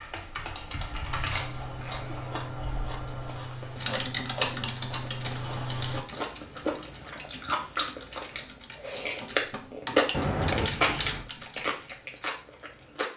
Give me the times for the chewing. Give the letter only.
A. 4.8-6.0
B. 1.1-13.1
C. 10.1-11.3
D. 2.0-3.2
B.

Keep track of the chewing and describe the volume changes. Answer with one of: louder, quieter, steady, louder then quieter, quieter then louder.
louder.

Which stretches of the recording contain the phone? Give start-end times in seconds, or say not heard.
10.1-11.3.